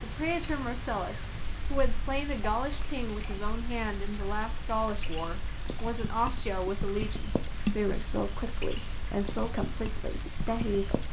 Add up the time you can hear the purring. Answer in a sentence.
You can't hear the purring here.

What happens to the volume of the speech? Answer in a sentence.
The volume of the speech stays about the same.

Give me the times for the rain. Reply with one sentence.
The rain can be heard from 0.0 to 11.0 s.